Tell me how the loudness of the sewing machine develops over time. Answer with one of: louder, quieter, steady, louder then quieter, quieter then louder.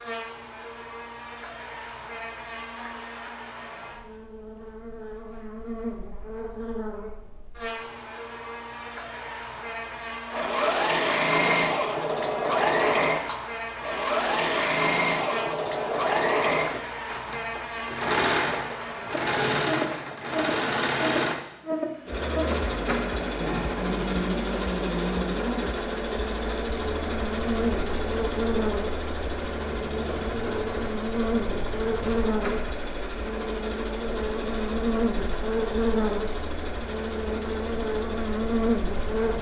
quieter.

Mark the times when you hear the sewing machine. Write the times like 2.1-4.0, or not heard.
10.3-39.3.